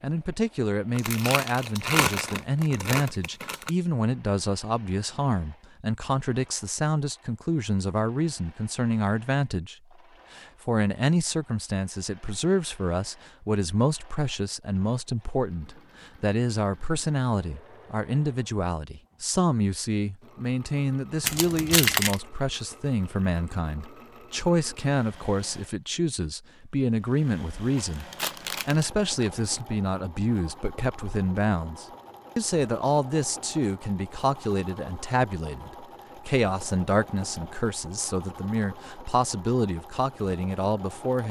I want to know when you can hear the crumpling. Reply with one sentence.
The crumpling can be heard from 0.9 to 3.7 s, from 21.2 to 22.2 s and from 27.8 to 29.6 s.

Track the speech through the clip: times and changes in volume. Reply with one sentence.
The speech can be heard from 0.0 to 9.8 s, at a steady volume; from 10.3 to 28.1 s, at a steady volume; and from 28.6 to 41.2 s, at a steady volume.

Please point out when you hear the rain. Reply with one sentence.
The rain can't be heard in this clip.